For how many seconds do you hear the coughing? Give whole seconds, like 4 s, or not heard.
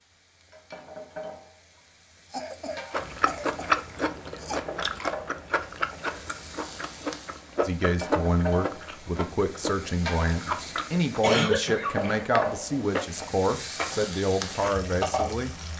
3 s.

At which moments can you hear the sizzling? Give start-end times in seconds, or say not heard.
0.0-15.7.